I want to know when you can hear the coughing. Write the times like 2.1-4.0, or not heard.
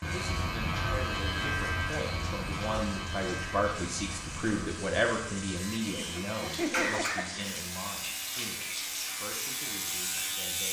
5.8-7.5.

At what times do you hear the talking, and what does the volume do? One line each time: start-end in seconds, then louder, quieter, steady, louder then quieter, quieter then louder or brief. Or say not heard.
0.0-10.6 louder then quieter.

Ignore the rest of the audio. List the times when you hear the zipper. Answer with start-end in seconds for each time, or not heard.
not heard.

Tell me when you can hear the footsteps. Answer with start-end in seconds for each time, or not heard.
not heard.